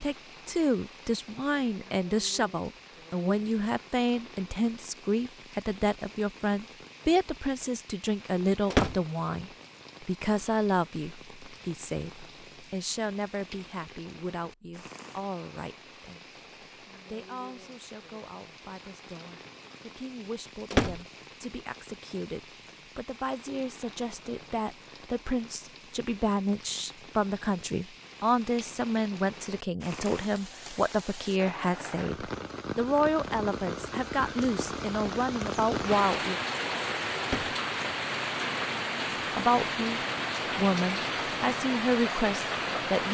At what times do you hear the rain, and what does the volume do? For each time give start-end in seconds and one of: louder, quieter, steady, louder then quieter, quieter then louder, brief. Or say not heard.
0.0-43.0 louder.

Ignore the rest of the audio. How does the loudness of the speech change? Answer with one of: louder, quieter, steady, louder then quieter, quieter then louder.
quieter then louder.